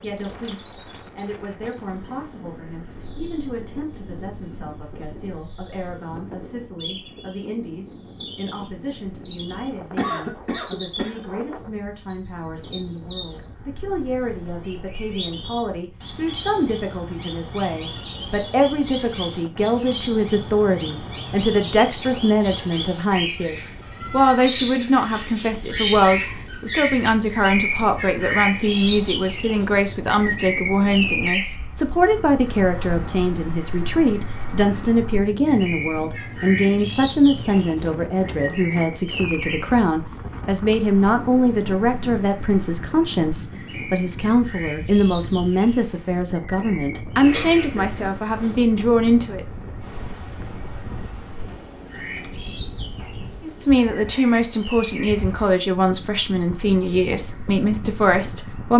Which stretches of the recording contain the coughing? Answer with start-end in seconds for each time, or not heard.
9.9-11.2, 47.2-48.6.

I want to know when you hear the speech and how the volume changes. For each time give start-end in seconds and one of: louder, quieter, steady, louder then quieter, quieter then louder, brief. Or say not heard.
0.0-49.5 louder
53.4-58.7 steady.